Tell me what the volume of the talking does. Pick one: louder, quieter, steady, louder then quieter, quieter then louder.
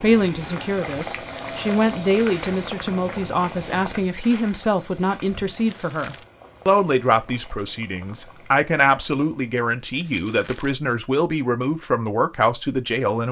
steady.